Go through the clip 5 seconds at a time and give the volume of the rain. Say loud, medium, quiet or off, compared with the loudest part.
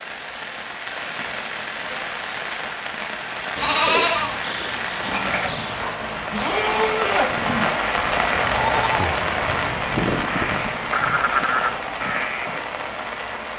medium, loud, loud.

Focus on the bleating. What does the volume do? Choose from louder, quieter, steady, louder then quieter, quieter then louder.
quieter then louder.